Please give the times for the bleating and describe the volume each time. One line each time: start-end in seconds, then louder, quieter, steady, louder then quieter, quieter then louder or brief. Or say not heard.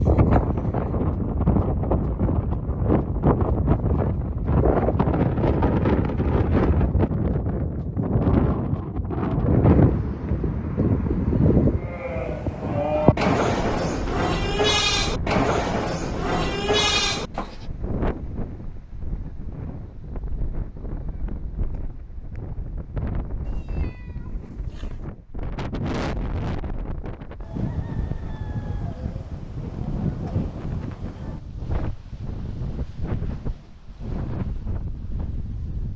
11.8-17.6 steady.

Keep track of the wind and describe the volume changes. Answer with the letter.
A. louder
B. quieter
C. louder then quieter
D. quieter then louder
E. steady
B.